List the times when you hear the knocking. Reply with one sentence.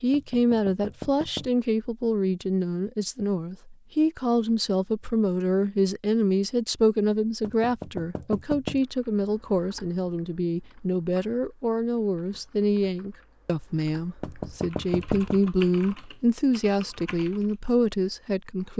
You can hear the knocking from 0.1 to 1.6 s, from 7.4 to 8.8 s and from 14.2 to 15.5 s.